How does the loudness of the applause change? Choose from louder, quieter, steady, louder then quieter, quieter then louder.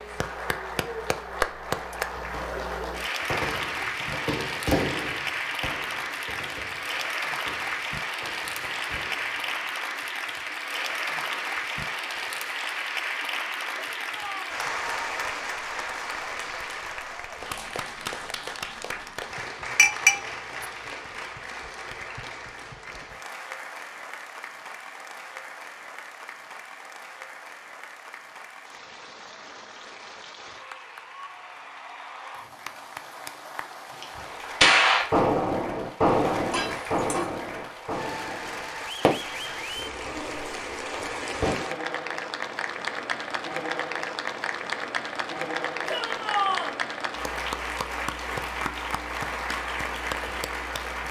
quieter then louder.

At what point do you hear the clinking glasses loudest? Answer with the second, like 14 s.
20 s.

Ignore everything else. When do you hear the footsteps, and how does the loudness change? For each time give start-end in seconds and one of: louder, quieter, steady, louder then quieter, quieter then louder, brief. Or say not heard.
not heard.